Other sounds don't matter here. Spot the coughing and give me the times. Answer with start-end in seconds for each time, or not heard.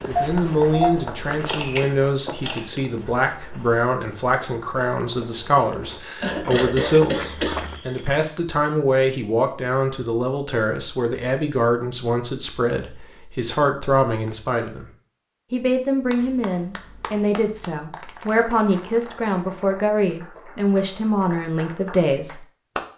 6.2-7.8.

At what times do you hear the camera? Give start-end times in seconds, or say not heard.
0.1-2.6.